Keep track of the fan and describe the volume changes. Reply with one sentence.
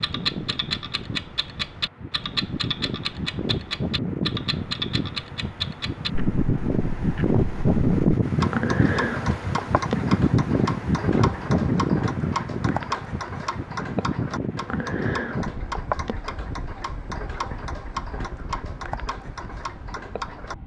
The volume of the fan goes up, then down.